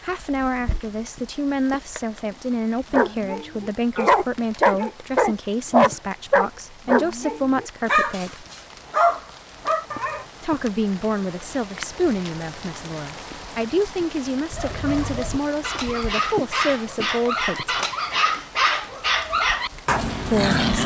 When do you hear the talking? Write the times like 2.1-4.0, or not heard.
0.0-8.4, 10.4-17.8, 20.2-20.8.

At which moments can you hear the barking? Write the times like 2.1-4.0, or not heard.
2.9-10.2, 14.5-20.8.